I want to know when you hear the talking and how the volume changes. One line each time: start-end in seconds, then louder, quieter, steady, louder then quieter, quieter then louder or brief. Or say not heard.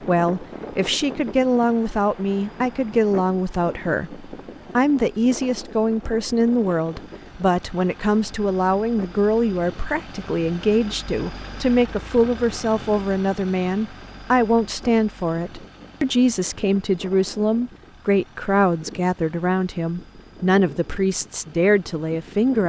0.1-22.6 steady.